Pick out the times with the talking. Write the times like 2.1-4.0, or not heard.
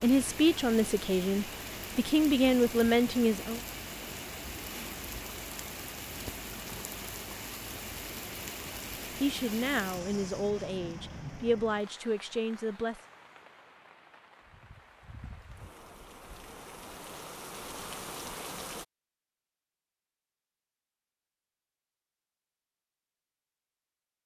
0.0-3.6, 9.2-13.0.